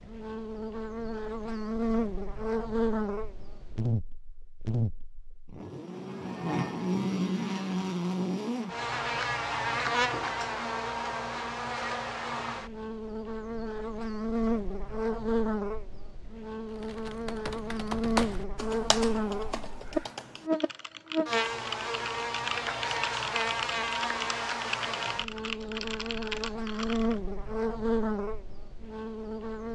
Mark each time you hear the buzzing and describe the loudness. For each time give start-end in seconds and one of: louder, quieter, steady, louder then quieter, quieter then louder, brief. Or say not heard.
0.0-29.6 steady.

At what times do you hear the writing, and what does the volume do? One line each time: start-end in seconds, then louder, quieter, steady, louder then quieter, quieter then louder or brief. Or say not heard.
not heard.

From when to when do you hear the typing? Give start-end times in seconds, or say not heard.
16.6-27.2.